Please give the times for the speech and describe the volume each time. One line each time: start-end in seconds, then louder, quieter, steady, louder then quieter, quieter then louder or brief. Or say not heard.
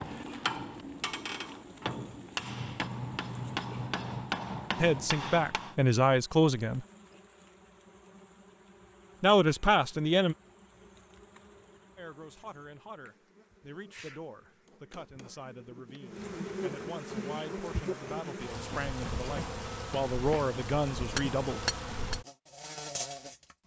4.8-6.8 brief
9.2-10.3 brief
11.9-21.6 louder.